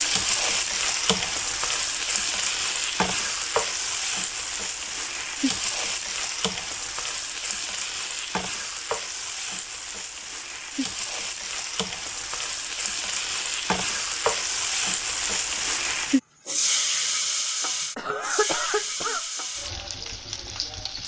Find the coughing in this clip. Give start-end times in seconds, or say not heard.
17.9-19.2.